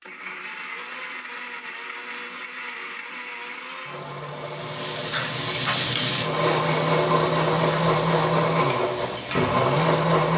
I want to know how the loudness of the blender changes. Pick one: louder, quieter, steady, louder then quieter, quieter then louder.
louder.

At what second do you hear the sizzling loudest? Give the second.
6 s.